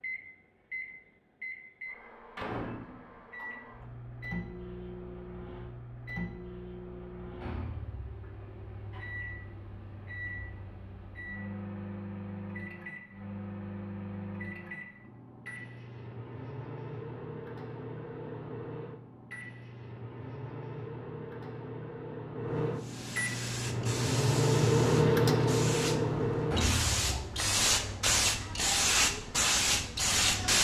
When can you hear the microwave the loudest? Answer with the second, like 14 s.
25 s.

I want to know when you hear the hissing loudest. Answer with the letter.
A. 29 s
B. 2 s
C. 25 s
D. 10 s
A.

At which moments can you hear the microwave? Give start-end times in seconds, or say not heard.
0.0-27.6.